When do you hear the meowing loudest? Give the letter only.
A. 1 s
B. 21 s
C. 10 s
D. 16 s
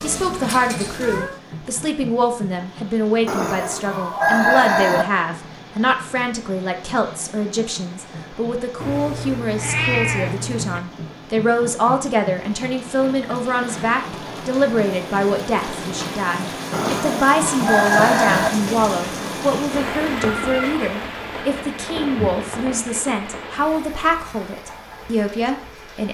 C.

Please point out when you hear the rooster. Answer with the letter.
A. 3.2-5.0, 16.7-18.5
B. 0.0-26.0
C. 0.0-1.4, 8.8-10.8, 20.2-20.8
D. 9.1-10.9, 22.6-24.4
A.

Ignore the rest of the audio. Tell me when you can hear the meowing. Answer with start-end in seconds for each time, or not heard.
0.0-1.4, 8.8-10.8, 20.2-20.8.